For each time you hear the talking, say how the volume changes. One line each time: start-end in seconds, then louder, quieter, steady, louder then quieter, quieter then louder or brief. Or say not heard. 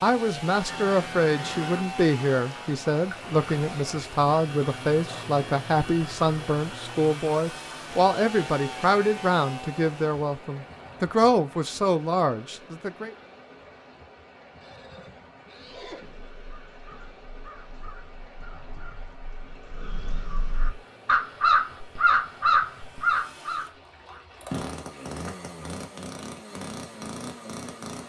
0.0-13.2 steady.